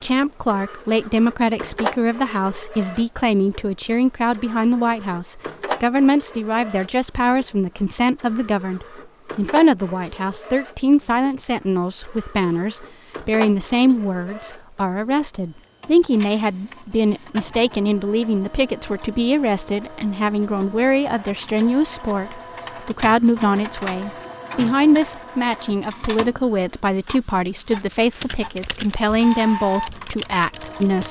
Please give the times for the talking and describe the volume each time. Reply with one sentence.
The talking can be heard from 0.0 to 31.0 s, at a steady volume.